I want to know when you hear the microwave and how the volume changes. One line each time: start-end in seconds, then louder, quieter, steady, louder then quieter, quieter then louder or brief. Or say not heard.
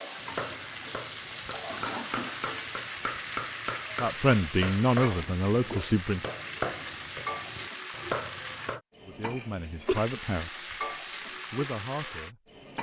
not heard.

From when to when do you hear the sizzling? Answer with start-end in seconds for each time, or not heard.
0.0-12.7.